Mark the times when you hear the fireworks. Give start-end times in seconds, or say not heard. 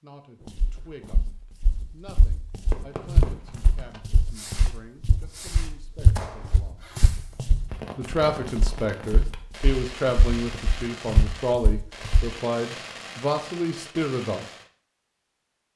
2.7-14.7.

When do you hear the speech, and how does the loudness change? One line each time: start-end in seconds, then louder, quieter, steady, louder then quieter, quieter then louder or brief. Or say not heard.
0.0-6.9 steady
8.0-14.4 steady.